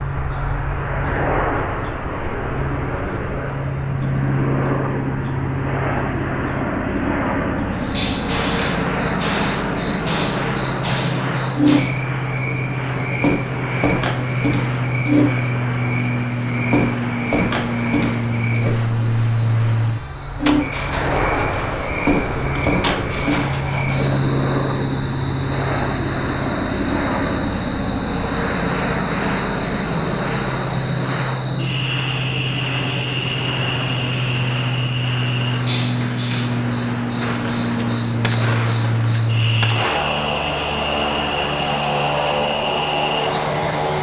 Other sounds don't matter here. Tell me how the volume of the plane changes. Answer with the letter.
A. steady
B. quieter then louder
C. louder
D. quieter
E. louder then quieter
A.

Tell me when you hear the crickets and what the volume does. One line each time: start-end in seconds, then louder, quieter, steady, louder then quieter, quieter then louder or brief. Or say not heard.
0.0-43.9 steady.